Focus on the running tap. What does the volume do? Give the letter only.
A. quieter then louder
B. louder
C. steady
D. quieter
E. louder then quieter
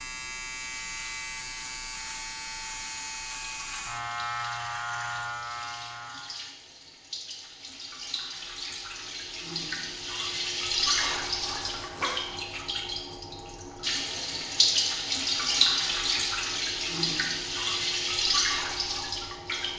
B.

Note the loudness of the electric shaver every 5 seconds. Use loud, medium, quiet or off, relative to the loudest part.
loud, loud, off, off.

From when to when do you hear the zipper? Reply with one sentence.
The zipper can be heard from 10.9 to 12.2 s.